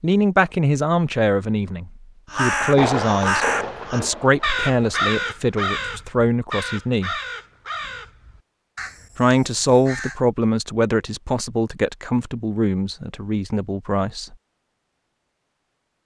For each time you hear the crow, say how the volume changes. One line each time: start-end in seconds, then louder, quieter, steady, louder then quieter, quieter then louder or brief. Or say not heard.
2.3-10.2 quieter.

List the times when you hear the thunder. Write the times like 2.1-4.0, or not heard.
2.7-5.2.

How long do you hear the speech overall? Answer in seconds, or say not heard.
12 s.